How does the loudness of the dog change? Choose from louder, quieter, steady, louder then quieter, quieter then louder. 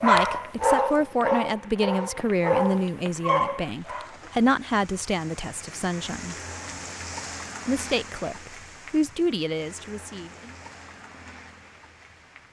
quieter then louder.